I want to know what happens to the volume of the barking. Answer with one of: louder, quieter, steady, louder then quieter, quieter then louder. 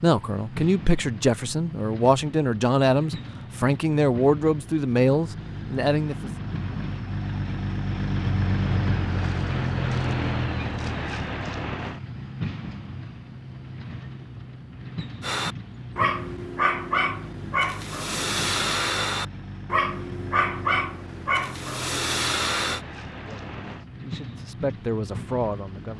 steady.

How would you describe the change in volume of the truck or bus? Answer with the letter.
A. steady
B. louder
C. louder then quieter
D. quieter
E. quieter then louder
C.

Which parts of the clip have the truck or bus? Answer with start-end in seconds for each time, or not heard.
0.0-25.9.